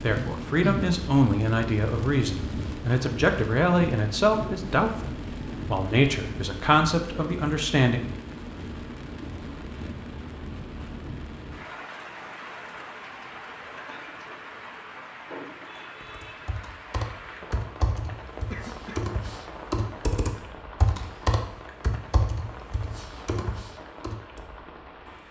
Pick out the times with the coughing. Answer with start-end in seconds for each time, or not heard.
18.5-19.1.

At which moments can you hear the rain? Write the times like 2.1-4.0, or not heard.
0.0-25.2.